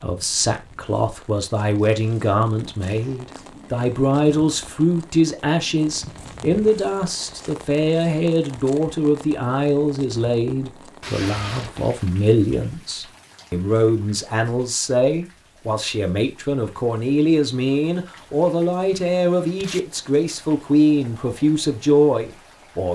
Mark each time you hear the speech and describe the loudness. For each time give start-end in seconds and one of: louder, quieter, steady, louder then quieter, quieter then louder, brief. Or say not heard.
0.0-22.8 steady.